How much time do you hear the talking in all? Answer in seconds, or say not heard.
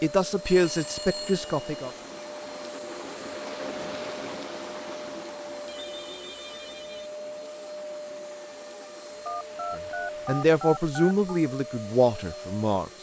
5 s.